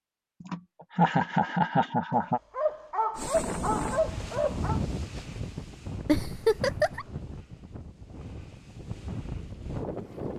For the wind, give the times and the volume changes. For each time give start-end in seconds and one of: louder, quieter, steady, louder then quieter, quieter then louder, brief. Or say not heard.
3.1-10.3 quieter then louder.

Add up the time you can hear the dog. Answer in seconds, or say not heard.
3 s.